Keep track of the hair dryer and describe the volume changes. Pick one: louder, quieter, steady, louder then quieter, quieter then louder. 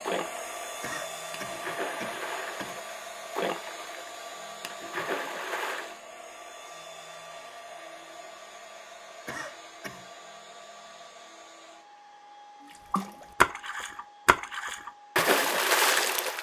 quieter.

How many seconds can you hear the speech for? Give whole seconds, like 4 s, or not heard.
not heard.